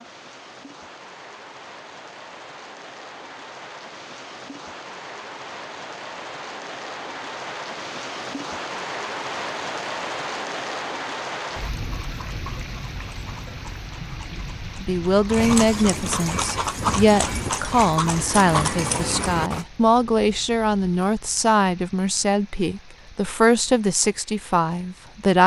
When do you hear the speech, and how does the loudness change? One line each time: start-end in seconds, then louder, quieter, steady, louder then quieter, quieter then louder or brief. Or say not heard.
14.8-25.4 steady.